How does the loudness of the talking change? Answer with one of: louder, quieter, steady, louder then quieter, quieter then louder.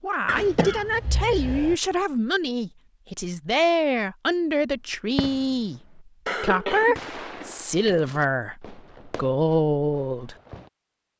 steady.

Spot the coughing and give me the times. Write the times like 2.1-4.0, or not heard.
0.2-1.8, 6.2-8.2.